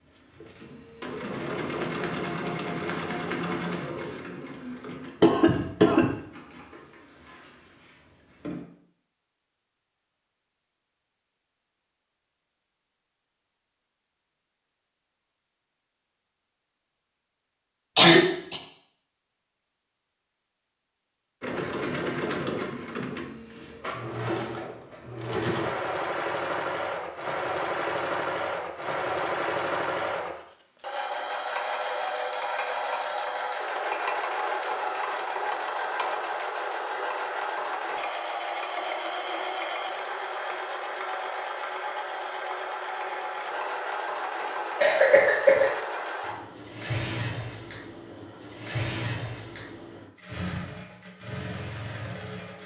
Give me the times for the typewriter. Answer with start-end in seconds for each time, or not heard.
not heard.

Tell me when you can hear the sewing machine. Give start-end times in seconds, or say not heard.
0.0-8.7, 21.4-52.6.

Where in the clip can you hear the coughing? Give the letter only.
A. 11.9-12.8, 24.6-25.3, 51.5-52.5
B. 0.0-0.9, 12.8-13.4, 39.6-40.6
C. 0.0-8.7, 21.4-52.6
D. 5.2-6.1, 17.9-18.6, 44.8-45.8
D.